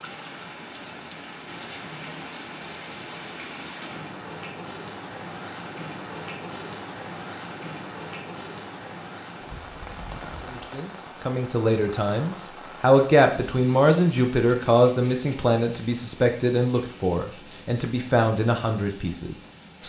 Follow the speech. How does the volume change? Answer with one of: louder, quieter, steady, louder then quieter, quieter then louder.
louder then quieter.